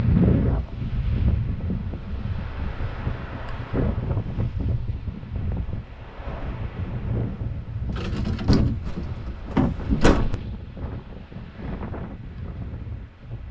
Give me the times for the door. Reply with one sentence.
The door can be heard from 7.9 to 10.3 s.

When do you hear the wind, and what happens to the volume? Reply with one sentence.
The wind can be heard from 0.0 to 13.4 s, getting quieter.